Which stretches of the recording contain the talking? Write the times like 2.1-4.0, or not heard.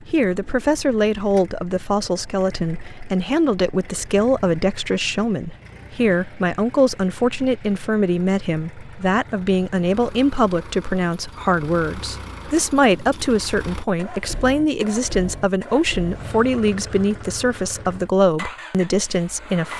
0.0-19.7.